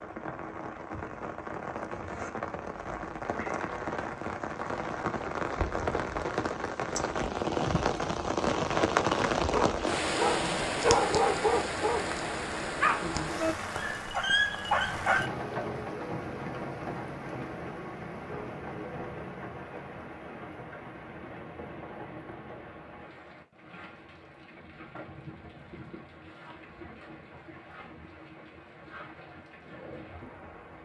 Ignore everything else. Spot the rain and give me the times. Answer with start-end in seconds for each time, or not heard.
0.0-30.8.